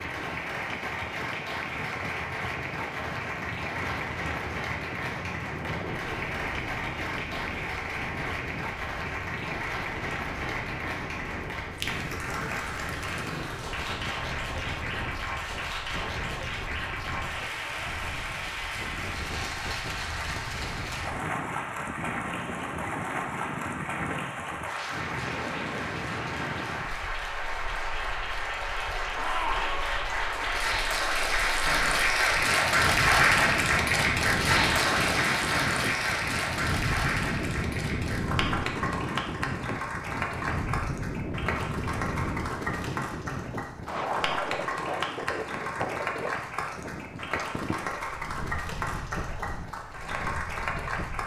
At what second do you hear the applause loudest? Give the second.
33 s.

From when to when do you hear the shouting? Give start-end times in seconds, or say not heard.
29.1-29.8.